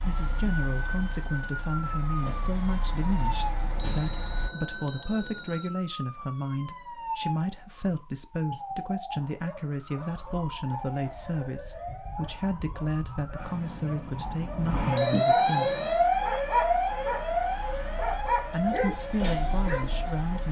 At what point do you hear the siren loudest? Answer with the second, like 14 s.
16 s.